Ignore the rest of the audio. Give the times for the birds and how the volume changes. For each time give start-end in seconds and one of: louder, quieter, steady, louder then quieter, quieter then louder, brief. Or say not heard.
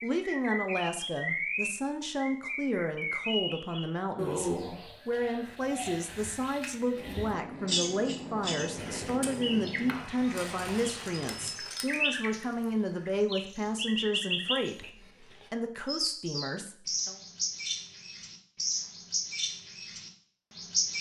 0.0-20.9 steady.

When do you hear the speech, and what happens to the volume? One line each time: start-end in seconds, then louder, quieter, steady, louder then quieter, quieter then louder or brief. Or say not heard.
0.0-17.1 steady.